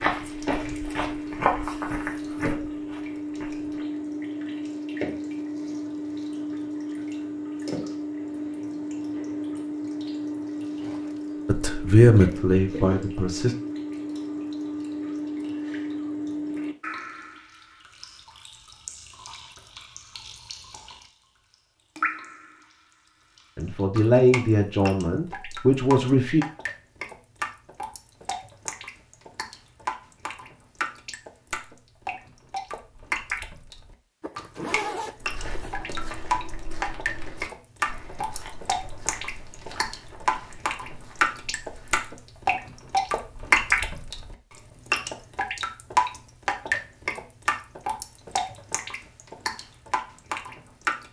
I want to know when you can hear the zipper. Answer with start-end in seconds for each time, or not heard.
10.8-11.4, 34.2-35.8.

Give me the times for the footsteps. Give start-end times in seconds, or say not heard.
0.0-3.7, 35.2-42.3.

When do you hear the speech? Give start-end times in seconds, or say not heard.
11.4-13.6, 23.6-26.4.